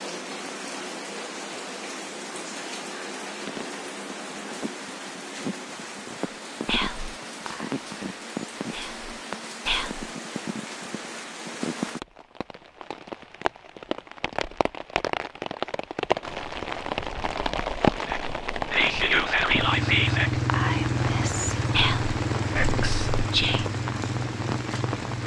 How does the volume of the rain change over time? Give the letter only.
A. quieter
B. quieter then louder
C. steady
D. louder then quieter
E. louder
E.